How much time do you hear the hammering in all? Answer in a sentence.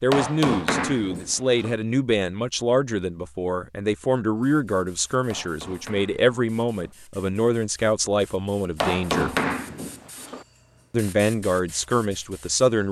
The hammering can be heard for 5 seconds in total.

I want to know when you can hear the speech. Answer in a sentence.
The speech can be heard from 0.0 to 9.3 s and from 10.9 to 12.8 s.